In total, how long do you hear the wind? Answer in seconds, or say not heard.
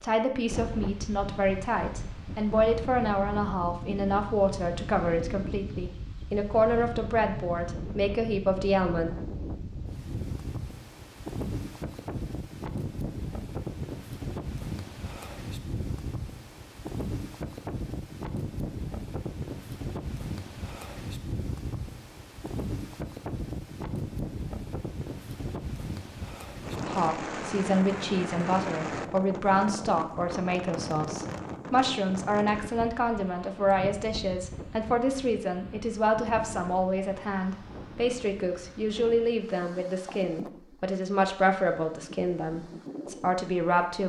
44 s.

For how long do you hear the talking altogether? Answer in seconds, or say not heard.
26 s.